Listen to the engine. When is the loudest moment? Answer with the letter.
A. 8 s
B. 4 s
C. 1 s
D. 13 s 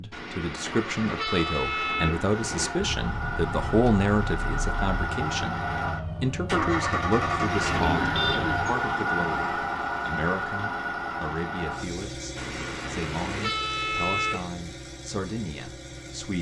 A.